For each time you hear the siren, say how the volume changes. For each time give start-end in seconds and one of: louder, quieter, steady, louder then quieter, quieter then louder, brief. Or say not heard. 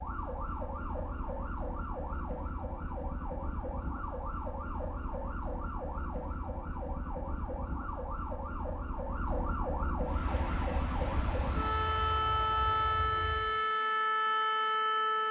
0.0-15.2 louder.